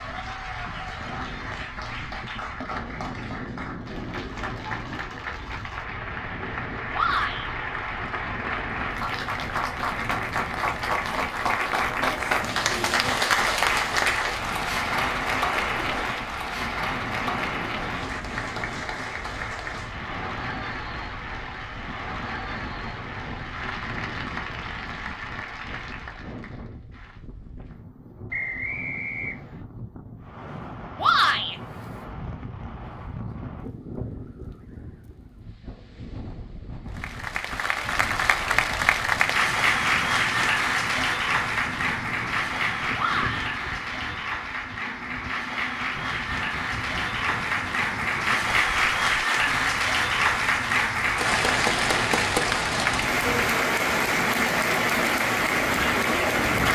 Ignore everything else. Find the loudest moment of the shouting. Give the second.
31 s.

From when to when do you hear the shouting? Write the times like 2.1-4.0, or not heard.
6.9-7.5, 30.9-31.6, 43.0-43.5.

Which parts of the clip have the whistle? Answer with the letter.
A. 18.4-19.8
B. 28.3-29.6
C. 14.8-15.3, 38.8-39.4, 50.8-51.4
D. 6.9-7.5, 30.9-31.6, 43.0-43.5
B.